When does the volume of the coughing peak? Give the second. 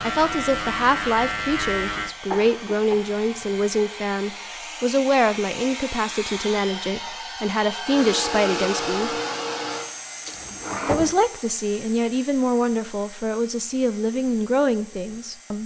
11 s.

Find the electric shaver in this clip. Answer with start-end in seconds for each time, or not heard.
0.0-2.1.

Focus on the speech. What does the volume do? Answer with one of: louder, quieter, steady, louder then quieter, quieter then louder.
steady.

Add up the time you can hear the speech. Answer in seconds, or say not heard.
14 s.